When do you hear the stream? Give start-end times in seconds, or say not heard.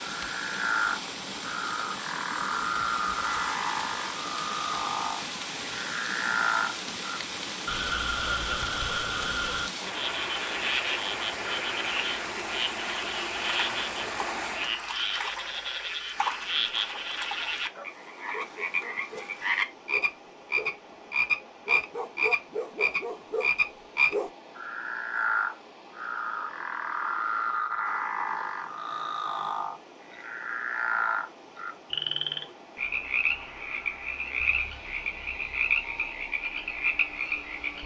0.0-37.8.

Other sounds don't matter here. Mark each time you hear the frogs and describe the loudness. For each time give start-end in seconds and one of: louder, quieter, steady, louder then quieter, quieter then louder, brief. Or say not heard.
0.0-37.8 steady.